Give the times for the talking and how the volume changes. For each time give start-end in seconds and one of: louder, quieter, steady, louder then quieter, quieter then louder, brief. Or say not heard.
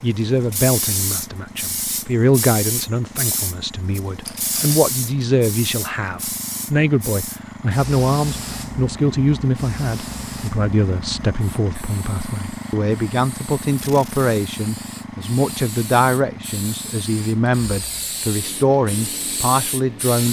0.0-20.2 steady.